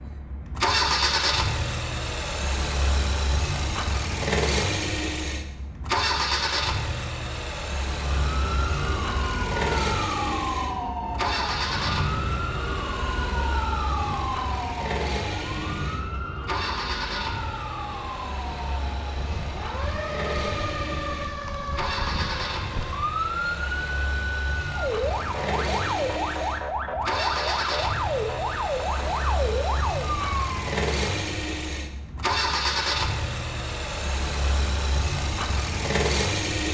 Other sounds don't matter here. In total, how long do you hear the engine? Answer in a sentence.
You can hear the engine for 37 seconds altogether.